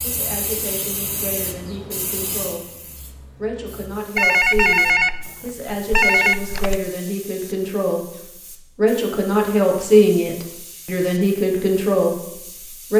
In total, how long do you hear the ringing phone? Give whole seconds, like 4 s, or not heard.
3 s.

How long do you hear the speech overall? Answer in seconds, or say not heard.
13 s.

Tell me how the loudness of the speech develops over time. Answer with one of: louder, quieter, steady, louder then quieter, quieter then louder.
louder.